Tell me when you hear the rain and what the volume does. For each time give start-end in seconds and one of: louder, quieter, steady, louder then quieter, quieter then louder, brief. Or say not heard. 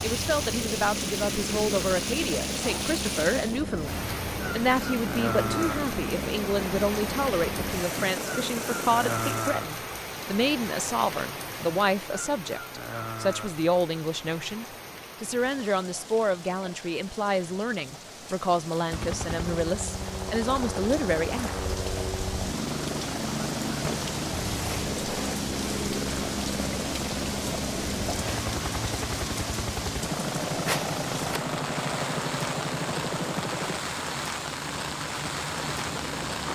0.0-36.4 quieter then louder.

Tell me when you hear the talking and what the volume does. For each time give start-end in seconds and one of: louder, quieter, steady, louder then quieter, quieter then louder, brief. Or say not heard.
0.0-21.6 steady.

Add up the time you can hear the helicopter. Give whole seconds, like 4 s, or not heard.
27 s.